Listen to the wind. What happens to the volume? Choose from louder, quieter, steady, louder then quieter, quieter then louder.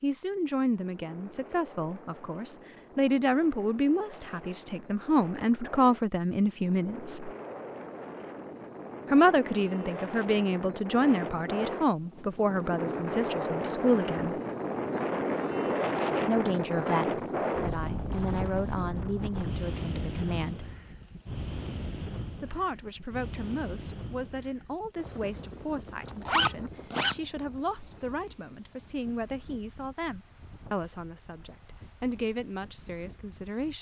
louder then quieter.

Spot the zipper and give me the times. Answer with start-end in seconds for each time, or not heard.
26.2-27.1.